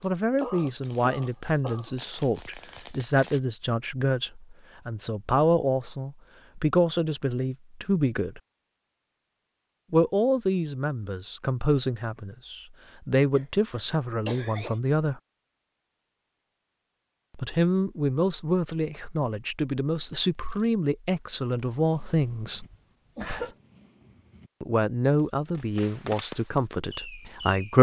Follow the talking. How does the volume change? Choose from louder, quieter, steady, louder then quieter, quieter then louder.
steady.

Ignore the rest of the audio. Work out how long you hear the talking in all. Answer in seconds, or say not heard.
22 s.